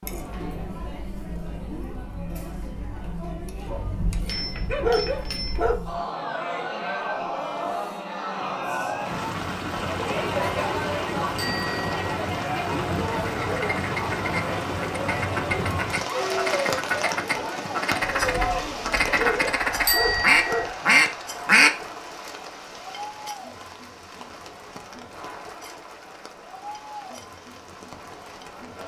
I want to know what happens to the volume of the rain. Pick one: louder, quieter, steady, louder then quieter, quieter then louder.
quieter.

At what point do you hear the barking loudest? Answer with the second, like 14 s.
5 s.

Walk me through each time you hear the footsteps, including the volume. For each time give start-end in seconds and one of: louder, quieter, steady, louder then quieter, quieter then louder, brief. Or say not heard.
not heard.